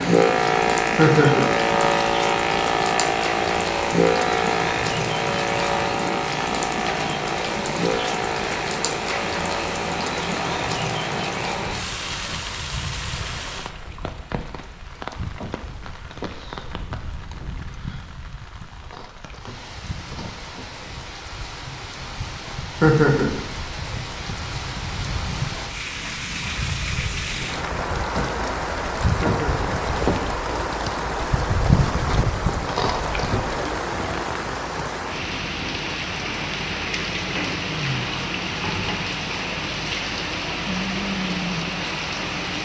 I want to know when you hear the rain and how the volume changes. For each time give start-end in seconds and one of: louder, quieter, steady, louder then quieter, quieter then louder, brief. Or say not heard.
0.0-42.6 quieter then louder.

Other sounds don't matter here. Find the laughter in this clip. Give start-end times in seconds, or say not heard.
0.9-1.5, 22.8-23.3, 29.2-29.7.